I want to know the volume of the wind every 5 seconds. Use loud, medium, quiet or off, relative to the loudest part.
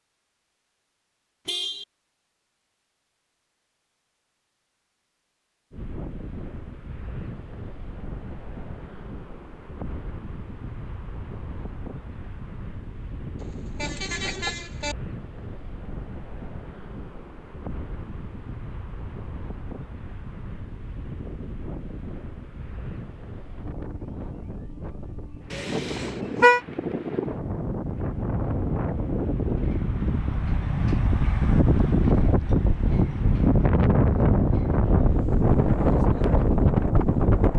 off, quiet, quiet, quiet, quiet, medium, loud, loud.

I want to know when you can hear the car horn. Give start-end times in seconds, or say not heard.
1.4-1.9, 13.4-14.9, 25.5-26.6.